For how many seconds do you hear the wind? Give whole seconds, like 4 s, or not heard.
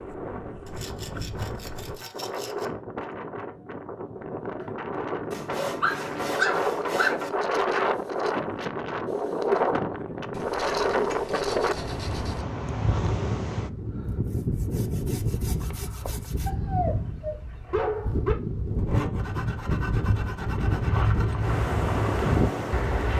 23 s.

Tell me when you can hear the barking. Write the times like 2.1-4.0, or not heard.
5.8-7.2, 16.4-18.4.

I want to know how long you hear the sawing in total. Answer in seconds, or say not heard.
11 s.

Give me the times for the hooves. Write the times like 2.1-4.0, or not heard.
20.6-23.1.